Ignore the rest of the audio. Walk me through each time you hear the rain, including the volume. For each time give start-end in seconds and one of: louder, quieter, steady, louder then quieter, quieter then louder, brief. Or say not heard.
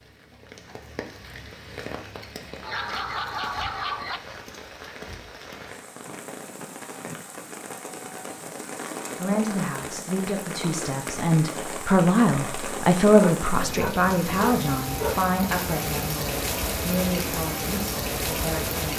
0.0-18.9 louder.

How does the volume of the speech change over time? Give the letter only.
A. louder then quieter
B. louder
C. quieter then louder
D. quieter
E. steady
A.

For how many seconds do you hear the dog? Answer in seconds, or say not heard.
4 s.